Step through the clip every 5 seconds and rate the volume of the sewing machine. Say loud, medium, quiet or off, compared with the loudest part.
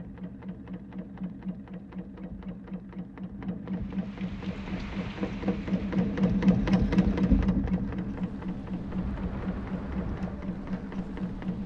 medium, loud, medium.